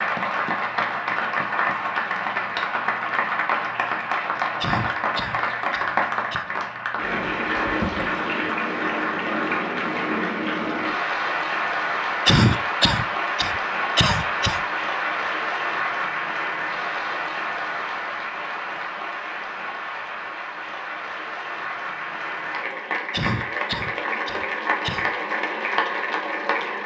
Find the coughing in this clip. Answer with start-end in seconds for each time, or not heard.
4.6-6.5, 12.2-14.6, 23.1-25.1.